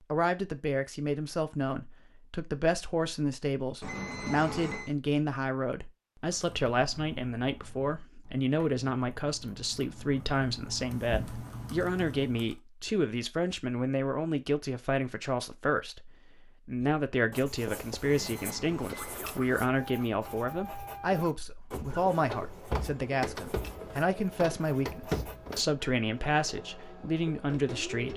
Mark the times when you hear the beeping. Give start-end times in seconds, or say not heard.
3.8-5.0, 18.0-19.2.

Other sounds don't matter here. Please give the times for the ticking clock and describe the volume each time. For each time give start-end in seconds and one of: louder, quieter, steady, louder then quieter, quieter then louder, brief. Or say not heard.
not heard.